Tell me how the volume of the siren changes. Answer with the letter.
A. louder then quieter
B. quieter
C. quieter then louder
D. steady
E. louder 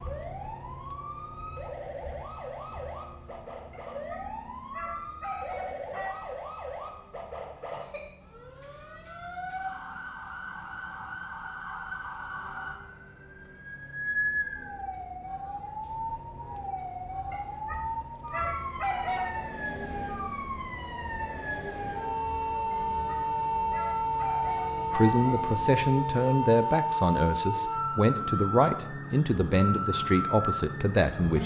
E.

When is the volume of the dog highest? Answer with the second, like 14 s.
19 s.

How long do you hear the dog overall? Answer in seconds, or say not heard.
7 s.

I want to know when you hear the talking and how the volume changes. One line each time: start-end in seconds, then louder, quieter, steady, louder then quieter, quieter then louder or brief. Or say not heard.
24.9-31.4 steady.